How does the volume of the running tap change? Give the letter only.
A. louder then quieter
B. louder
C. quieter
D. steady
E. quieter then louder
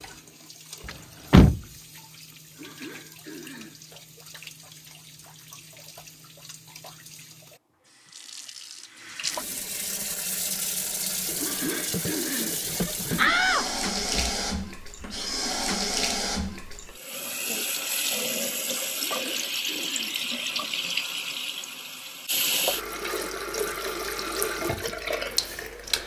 B.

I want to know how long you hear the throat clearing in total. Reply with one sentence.
You can hear the throat clearing for 5 seconds altogether.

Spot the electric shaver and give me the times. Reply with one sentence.
The electric shaver can't be heard in this clip.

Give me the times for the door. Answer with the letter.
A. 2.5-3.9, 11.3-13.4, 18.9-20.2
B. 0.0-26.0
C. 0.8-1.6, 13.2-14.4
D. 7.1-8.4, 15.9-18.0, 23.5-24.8
C.